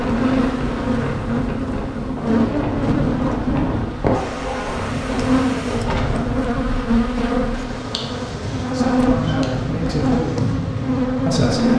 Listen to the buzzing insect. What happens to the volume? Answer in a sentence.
The loudness of the buzzing insect stays about the same.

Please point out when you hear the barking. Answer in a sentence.
You can hear the barking from 4.0 to 6.0 s.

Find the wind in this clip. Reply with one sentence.
You can hear the wind from 0.0 to 11.7 s.